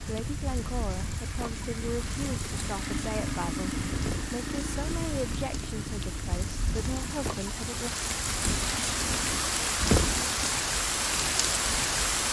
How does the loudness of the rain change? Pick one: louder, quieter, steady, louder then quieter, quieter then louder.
louder.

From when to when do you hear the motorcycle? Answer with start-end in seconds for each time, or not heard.
0.0-9.3.